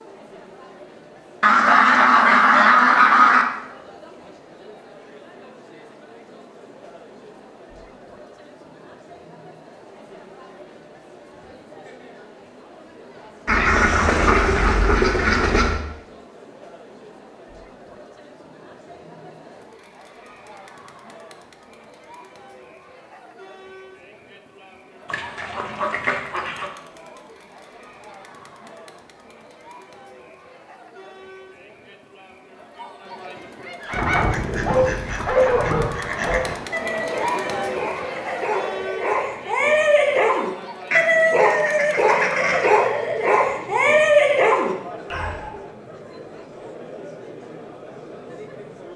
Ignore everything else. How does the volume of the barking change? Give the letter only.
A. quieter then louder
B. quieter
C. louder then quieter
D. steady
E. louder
A.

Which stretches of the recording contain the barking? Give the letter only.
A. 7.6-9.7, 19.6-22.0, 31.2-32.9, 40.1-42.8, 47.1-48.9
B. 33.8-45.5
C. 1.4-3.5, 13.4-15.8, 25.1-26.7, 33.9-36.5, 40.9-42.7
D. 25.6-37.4
B.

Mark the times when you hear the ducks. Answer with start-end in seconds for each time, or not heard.
1.4-3.5, 13.4-15.8, 25.1-26.7, 33.9-36.5, 40.9-42.7.